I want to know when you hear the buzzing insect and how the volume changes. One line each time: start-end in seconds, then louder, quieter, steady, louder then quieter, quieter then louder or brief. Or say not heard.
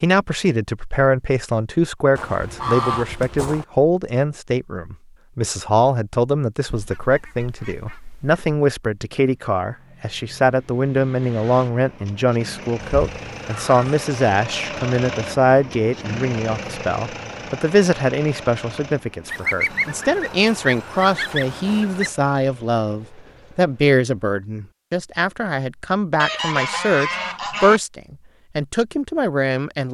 not heard.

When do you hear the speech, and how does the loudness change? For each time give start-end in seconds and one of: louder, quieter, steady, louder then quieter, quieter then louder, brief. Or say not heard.
0.0-29.8 steady.